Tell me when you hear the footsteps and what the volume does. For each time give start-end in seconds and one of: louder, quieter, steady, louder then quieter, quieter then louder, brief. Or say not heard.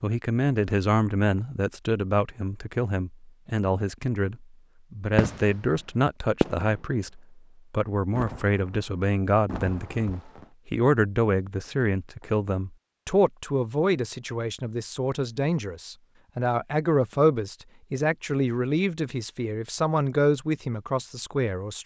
not heard.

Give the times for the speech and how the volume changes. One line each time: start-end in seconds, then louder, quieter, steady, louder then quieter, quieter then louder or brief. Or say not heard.
0.0-21.8 steady.